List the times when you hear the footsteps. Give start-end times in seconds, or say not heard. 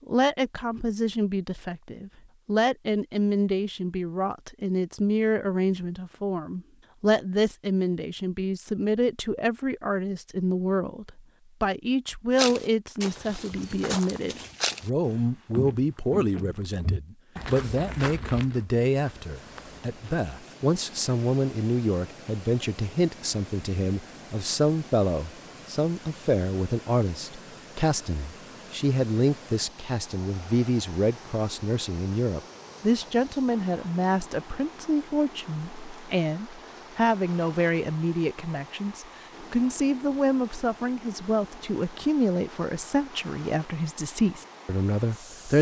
12.3-20.3.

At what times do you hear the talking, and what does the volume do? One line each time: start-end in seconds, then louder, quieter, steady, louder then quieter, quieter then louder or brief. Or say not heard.
0.1-45.5 steady.